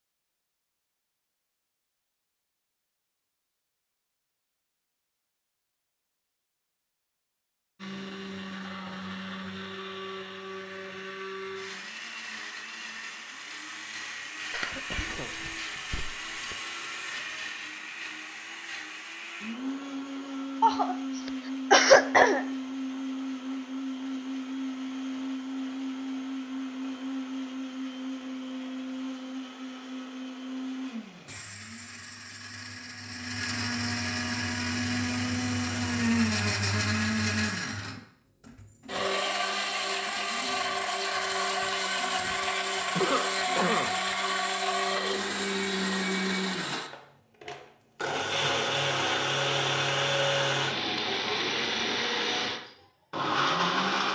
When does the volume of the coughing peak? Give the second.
22 s.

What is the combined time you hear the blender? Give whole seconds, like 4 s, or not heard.
46 s.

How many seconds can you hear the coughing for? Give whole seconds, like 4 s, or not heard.
5 s.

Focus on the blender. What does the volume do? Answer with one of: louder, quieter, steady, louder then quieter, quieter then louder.
louder.